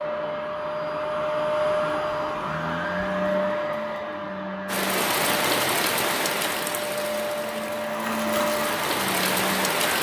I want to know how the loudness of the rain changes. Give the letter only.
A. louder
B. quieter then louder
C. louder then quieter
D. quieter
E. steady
B.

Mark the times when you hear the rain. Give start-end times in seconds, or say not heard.
4.7-9.9.